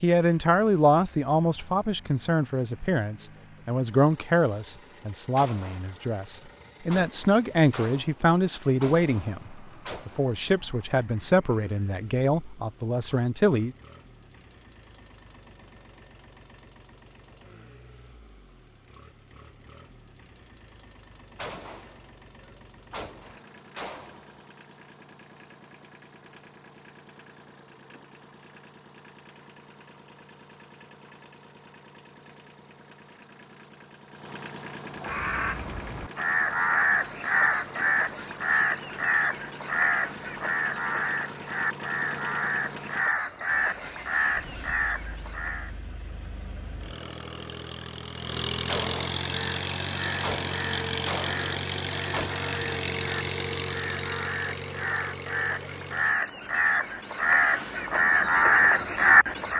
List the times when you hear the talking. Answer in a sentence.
The talking can be heard from 0.0 to 13.8 s.